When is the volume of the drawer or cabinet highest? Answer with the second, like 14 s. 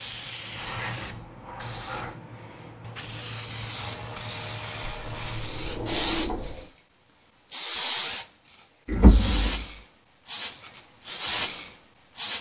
9 s.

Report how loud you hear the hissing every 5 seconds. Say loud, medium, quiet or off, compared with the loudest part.
medium, loud, loud.